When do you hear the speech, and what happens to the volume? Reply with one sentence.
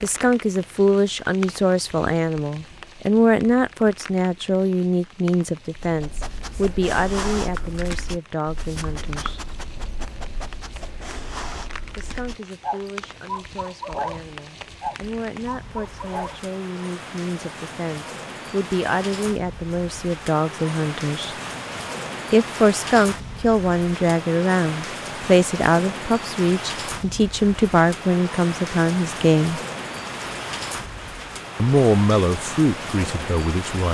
The speech can be heard from 0.0 to 9.4 s, getting quieter; from 11.9 to 21.4 s, getting louder; from 22.3 to 29.6 s, at a steady volume; and briefly from 31.6 to 33.8 s.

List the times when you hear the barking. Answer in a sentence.
You can hear the barking from 5.8 to 16.4 s.